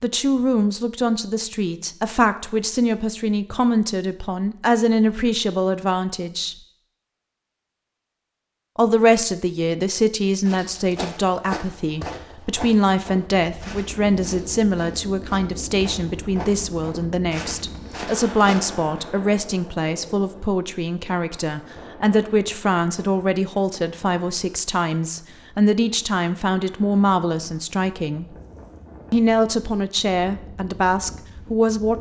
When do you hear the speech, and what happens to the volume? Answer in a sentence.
The speech can be heard from 0.0 to 6.5 s, at a steady volume; from 8.8 to 28.4 s, at a steady volume; and briefly from 29.1 to 31.9 s.